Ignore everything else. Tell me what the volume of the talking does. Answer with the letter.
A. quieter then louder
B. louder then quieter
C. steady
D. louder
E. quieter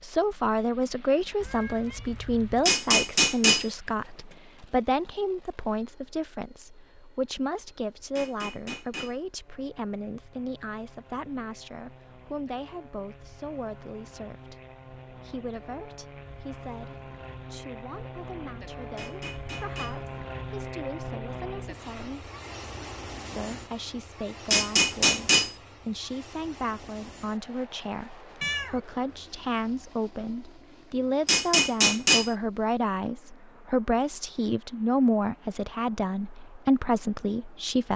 A.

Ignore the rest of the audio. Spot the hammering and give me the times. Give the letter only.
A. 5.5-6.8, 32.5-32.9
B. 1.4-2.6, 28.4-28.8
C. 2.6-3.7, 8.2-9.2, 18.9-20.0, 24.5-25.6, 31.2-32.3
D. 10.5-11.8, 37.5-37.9
C.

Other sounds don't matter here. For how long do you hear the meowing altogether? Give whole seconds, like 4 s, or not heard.
2 s.